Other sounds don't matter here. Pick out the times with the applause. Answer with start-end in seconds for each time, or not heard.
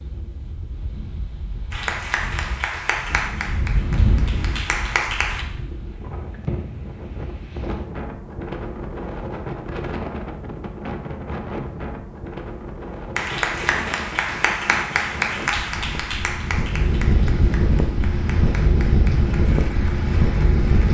1.7-5.5, 13.2-20.8.